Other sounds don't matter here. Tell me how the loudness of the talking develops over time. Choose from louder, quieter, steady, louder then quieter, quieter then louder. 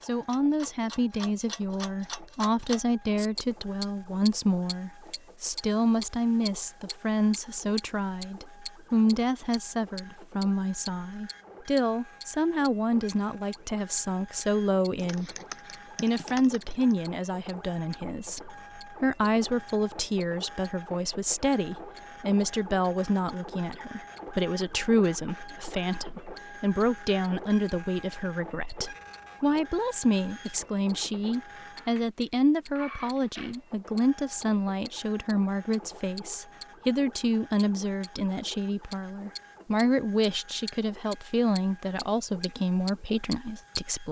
steady.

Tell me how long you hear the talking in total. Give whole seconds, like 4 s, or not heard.
43 s.